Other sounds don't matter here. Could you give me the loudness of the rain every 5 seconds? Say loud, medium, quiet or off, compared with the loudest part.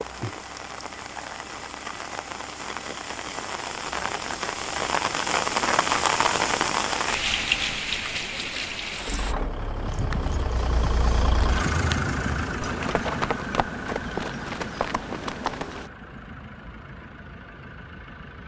medium, loud, off, off.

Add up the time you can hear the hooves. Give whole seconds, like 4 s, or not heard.
6 s.